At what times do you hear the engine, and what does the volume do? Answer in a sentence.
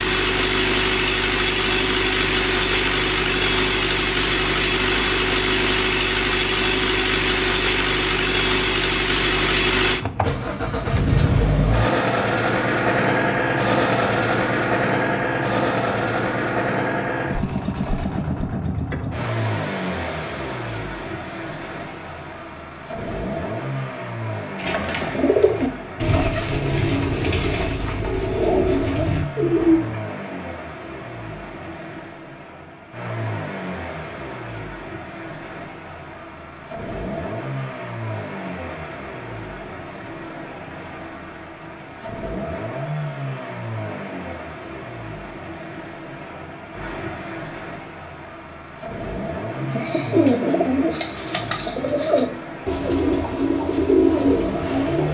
You can hear the engine from 0.0 to 55.1 s, getting quieter.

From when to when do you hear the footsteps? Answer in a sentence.
You can't hear the footsteps here.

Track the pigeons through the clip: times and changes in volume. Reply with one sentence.
You can hear the pigeons from 24.6 to 29.9 s, at a steady volume; and from 49.5 to 55.1 s, getting quieter then louder.